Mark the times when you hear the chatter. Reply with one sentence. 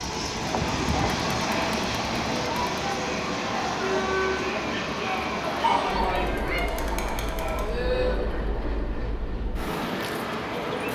The chatter can be heard from 0.0 to 8.3 s.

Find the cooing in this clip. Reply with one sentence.
The cooing can't be heard in this clip.